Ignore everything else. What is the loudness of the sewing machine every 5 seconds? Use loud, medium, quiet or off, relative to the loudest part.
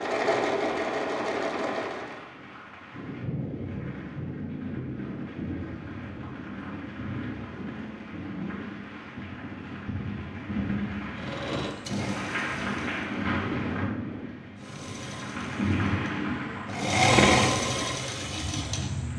loud, off, medium, loud.